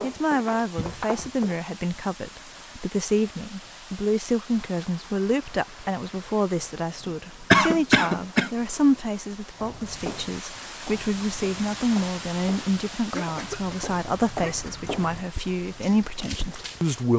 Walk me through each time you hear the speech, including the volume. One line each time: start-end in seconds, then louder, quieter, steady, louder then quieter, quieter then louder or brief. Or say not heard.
0.0-17.1 steady.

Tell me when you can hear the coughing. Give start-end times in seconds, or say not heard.
0.8-1.4, 7.5-8.5, 13.1-14.9.